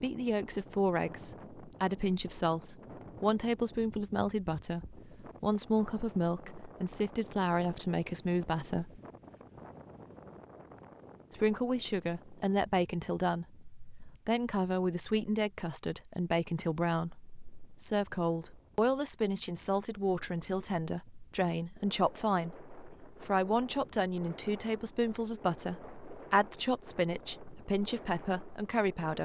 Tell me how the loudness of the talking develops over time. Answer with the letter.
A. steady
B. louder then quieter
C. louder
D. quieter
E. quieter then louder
A.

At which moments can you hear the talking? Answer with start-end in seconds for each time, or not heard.
0.0-9.0, 11.3-29.2.